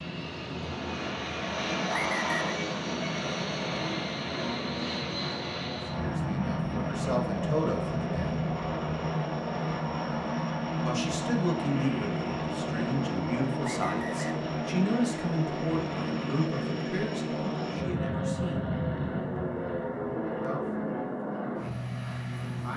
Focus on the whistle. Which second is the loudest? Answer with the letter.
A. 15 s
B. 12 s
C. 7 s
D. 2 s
D.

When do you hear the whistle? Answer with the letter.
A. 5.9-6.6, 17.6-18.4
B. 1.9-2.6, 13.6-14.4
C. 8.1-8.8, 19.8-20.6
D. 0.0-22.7
B.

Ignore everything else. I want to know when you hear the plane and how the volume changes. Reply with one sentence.
The plane can be heard from 0.0 to 22.7 s, at a steady volume.